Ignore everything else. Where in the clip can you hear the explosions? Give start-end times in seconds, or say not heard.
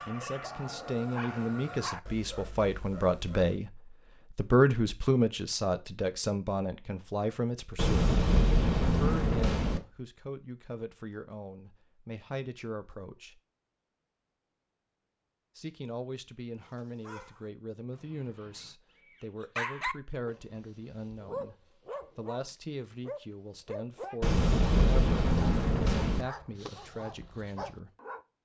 7.8-9.8, 24.2-26.2.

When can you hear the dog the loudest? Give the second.
20 s.